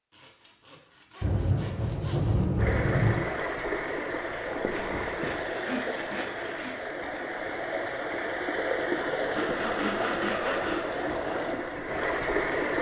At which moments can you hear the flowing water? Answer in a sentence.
You can hear the flowing water from 2.5 to 12.7 s.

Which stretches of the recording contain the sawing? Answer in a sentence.
The sawing can be heard from 0.1 to 2.4 s, from 4.7 to 6.8 s and from 9.3 to 10.8 s.